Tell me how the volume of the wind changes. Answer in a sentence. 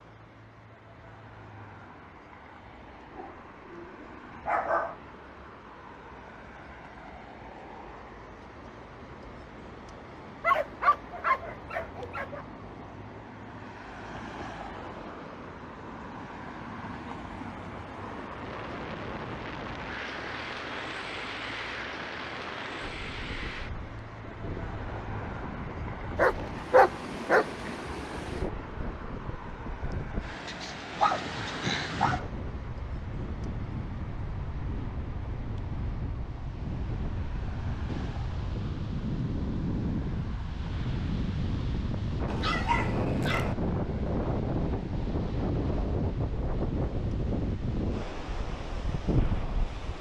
The loudness of the wind goes up.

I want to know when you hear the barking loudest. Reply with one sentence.
The volume of the barking peaks at 27 seconds.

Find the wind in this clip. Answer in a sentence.
You can hear the wind from 18.2 to 49.9 s.